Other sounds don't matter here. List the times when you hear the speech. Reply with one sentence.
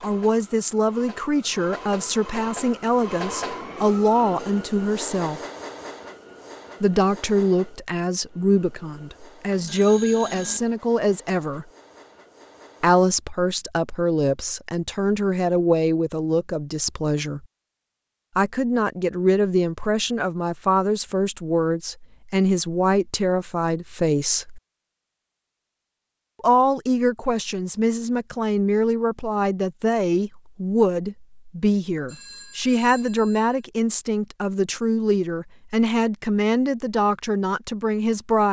The speech can be heard from 0.0 to 5.4 s, from 6.8 to 11.7 s, from 12.8 to 17.4 s, from 18.4 to 24.6 s and from 26.4 to 38.4 s.